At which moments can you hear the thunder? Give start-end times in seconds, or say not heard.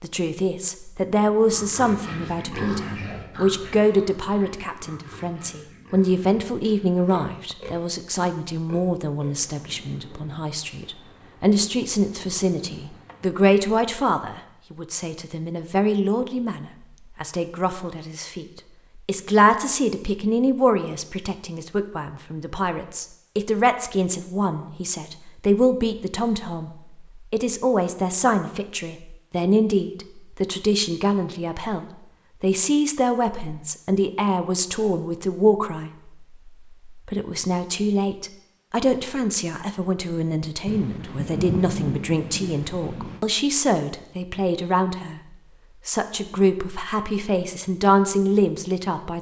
9.4-13.3, 40.6-43.2.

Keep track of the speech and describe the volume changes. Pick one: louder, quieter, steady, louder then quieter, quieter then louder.
steady.